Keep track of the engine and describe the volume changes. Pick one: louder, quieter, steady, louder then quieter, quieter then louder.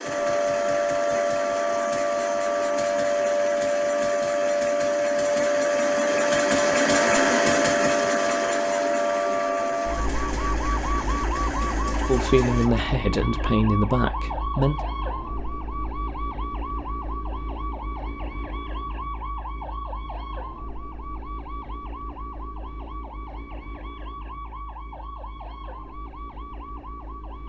louder then quieter.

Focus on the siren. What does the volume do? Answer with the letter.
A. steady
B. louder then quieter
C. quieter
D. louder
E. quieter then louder
C.